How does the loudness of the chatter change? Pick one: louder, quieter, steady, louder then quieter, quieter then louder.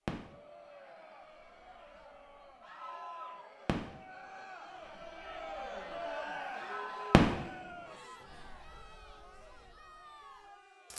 louder then quieter.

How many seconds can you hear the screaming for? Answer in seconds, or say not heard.
2 s.